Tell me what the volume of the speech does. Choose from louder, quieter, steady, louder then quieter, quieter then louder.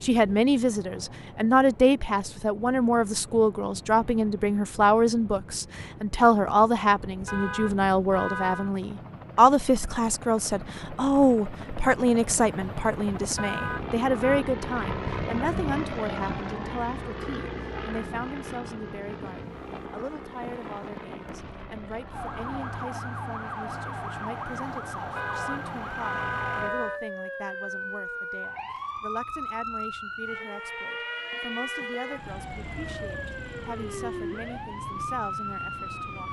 quieter.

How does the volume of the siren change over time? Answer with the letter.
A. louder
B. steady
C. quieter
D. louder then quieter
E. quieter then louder
B.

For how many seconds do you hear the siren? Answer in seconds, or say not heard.
14 s.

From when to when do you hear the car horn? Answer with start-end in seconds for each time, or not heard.
7.2-8.7, 13.3-14.4, 25.1-27.0.